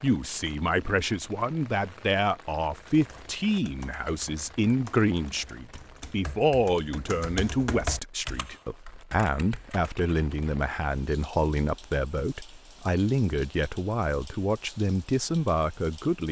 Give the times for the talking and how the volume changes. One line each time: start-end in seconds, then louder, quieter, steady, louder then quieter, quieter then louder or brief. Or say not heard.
0.0-16.2 steady.